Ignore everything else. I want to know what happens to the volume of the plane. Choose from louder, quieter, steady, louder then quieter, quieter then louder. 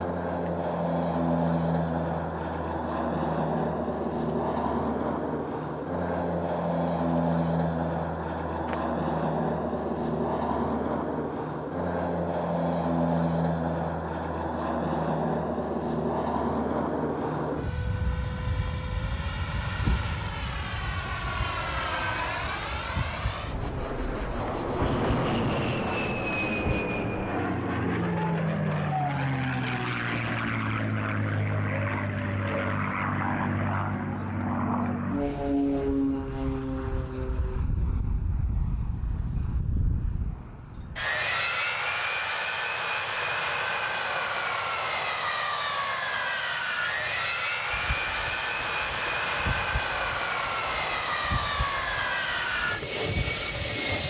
steady.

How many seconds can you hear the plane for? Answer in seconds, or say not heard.
54 s.